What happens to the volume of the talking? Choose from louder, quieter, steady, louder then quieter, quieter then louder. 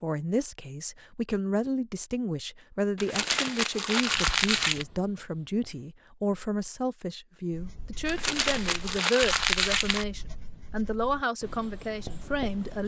steady.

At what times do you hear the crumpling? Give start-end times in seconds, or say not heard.
3.0-4.8, 8.1-10.1.